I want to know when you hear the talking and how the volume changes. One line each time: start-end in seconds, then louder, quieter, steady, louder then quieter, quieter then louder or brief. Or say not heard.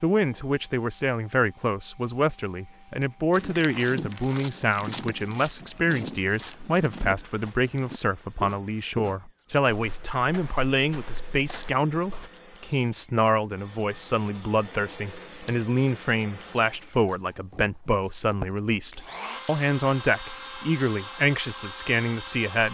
0.0-22.6 steady.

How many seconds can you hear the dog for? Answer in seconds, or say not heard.
not heard.